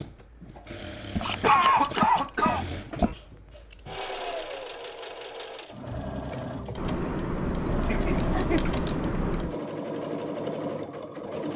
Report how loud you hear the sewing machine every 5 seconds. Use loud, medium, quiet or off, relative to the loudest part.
medium, loud, loud.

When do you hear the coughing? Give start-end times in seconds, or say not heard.
1.1-3.1, 7.8-8.7.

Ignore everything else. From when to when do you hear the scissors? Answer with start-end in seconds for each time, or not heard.
1.2-2.3, 6.8-9.6.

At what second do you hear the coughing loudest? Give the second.
2 s.